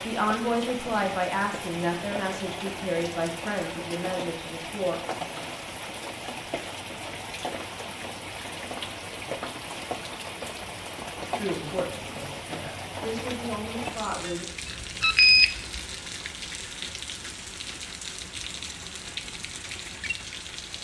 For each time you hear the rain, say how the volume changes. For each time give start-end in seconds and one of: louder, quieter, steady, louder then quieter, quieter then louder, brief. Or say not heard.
0.0-20.7 steady.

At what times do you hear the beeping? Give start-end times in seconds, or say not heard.
14.7-15.8.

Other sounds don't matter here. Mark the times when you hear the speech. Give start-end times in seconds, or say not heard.
0.1-5.0, 11.2-14.4.